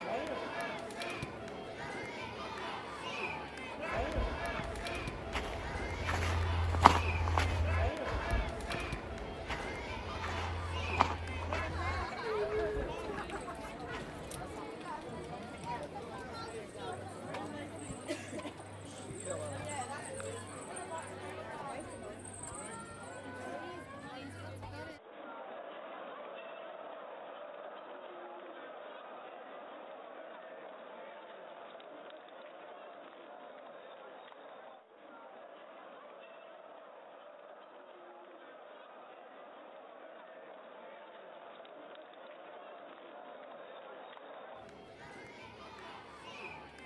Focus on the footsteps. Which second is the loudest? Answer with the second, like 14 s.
7 s.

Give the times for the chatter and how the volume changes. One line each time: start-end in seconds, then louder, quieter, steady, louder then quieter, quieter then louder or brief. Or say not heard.
0.0-46.8 quieter.